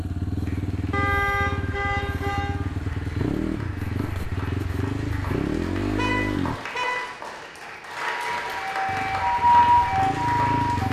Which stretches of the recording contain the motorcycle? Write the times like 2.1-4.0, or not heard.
0.0-6.5, 8.8-10.8.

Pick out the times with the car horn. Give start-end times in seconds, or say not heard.
0.9-2.6, 6.0-7.2.